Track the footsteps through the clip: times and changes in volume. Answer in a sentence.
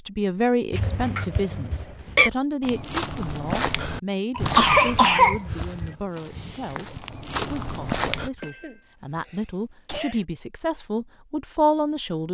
The footsteps can be heard from 2.6 to 8.3 s, getting quieter then louder.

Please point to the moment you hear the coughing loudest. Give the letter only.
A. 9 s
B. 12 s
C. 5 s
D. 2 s
C.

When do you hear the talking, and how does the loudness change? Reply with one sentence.
You can hear the talking from 0.1 to 12.2 s, getting quieter then louder.